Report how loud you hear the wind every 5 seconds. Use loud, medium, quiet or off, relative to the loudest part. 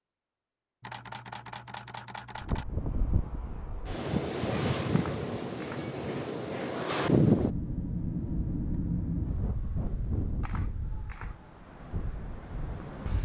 loud, loud, medium.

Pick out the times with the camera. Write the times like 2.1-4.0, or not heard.
0.8-2.6, 4.9-5.8, 10.4-11.3.